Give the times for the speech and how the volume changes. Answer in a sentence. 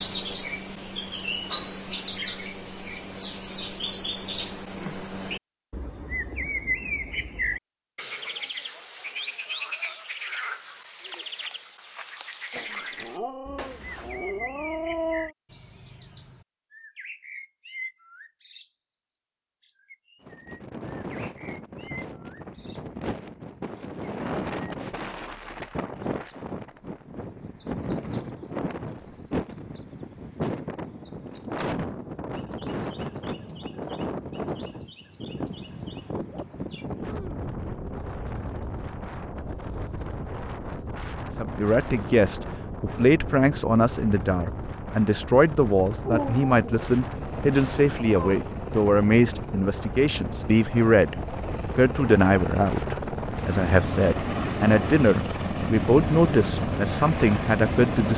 The speech can be heard from 41.4 to 58.1 s, at a steady volume.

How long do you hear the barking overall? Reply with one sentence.
You can hear the barking for 5 seconds altogether.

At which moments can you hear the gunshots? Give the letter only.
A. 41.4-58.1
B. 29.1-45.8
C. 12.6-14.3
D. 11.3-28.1
C.